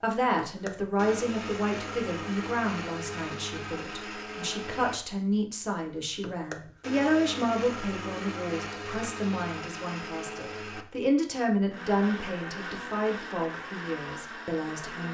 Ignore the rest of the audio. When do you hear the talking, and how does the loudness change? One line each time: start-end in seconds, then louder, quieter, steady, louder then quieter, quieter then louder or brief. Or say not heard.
0.0-15.1 steady.